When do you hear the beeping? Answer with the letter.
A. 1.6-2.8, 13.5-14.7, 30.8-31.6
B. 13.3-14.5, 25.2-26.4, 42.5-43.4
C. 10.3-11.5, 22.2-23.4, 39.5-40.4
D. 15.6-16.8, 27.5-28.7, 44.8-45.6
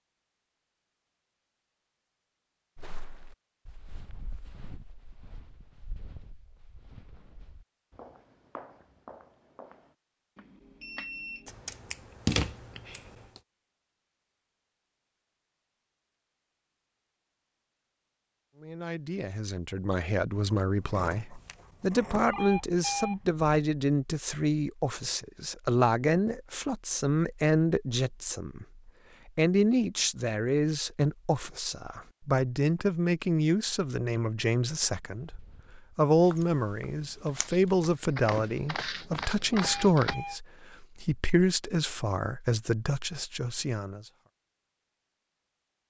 C.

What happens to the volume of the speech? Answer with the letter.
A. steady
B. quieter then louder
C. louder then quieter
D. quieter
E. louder
A.